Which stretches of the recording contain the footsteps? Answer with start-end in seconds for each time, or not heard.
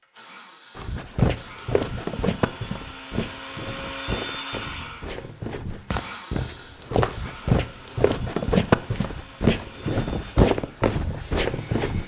0.8-12.0.